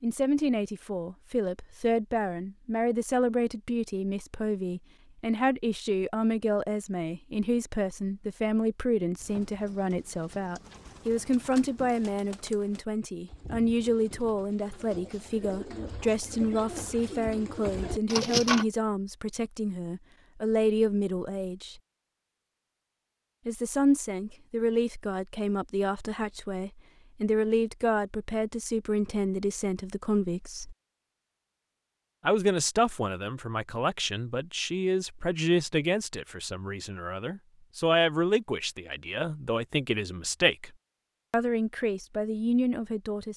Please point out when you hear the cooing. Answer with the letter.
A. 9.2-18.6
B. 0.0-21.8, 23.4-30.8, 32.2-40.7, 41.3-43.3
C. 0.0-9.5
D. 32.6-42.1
A.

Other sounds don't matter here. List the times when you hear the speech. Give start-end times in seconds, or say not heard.
0.0-21.8, 23.4-30.8, 32.2-40.7, 41.3-43.3.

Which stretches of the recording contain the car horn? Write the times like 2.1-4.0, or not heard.
not heard.